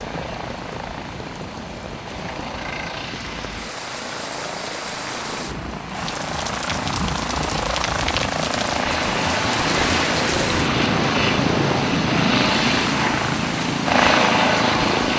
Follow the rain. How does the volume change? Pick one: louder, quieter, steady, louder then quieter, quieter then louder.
louder.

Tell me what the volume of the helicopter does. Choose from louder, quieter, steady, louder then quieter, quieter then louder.
louder.